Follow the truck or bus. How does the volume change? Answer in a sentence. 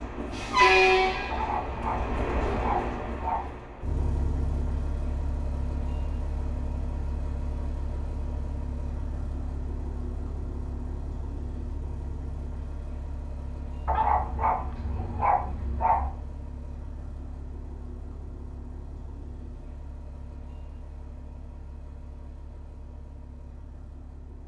The loudness of the truck or bus goes down.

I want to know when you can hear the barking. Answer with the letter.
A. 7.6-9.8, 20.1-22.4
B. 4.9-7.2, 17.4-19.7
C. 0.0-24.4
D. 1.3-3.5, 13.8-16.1
D.